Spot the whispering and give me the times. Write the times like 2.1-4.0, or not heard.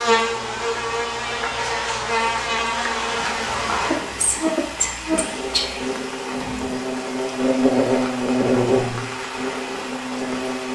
3.3-5.9.